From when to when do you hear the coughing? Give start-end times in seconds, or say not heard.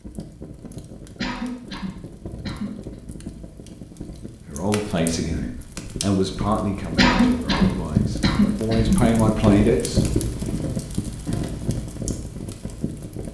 1.1-3.0, 7.0-9.1.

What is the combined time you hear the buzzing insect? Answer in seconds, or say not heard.
not heard.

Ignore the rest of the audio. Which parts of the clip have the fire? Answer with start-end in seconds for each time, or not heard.
0.0-13.2.